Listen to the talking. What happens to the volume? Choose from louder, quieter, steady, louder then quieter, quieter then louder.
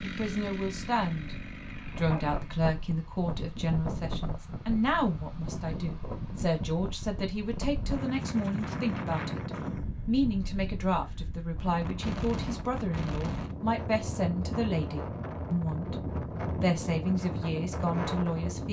steady.